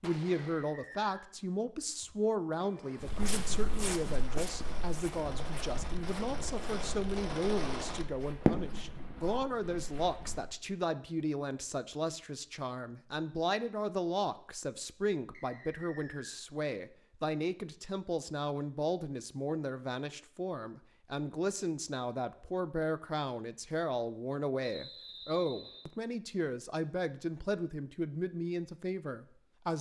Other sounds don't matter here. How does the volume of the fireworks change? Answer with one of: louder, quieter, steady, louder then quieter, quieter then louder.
louder.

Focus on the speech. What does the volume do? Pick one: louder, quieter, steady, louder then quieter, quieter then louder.
steady.